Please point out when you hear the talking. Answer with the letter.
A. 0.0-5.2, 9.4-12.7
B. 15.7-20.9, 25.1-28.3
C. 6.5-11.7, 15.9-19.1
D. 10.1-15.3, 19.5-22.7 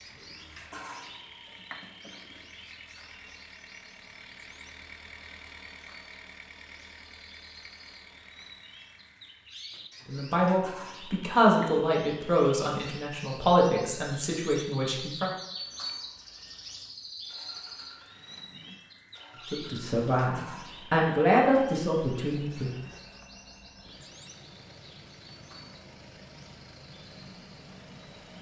D.